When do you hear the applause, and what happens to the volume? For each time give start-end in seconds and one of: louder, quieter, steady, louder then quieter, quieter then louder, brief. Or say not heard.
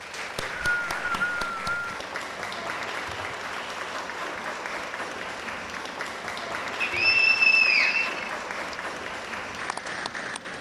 0.0-10.5 steady.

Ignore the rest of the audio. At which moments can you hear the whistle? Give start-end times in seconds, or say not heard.
0.1-1.8, 6.8-8.8.